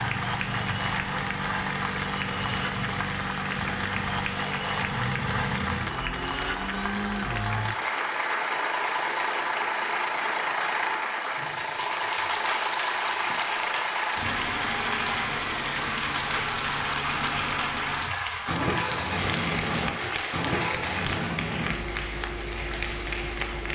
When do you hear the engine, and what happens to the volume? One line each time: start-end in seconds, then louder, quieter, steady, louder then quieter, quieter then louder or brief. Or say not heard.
0.0-23.6 steady.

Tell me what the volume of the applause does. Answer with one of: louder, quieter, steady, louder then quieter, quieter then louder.
steady.